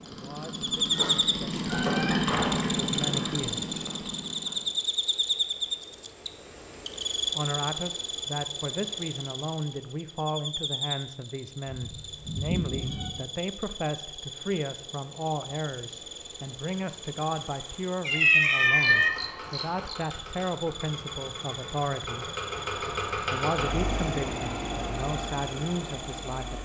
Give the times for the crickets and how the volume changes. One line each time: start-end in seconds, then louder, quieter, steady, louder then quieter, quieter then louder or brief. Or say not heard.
0.0-26.5 quieter.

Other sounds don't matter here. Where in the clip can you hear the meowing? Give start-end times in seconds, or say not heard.
1.7-3.4, 11.7-13.1, 18.1-19.1.